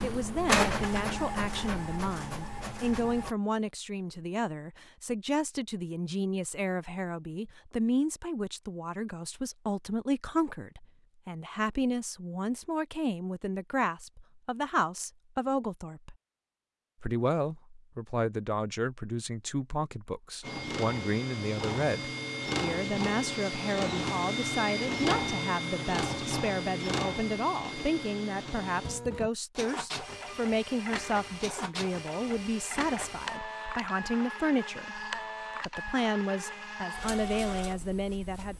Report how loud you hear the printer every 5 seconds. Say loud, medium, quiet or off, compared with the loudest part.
loud, off, off, off, loud, loud, medium, medium.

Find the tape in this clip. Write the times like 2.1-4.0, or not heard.
not heard.